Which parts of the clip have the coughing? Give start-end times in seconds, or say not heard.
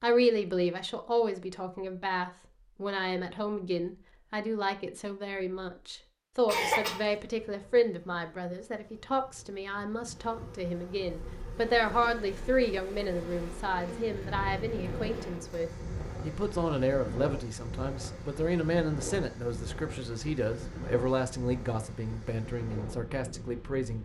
6.5-7.0.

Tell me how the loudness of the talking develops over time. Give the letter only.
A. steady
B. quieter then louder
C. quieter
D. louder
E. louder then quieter
A.